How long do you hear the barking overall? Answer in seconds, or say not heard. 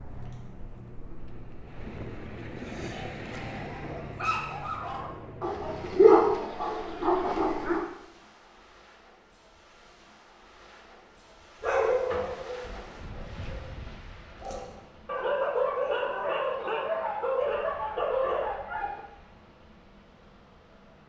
13 s.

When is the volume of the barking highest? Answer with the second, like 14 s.
6 s.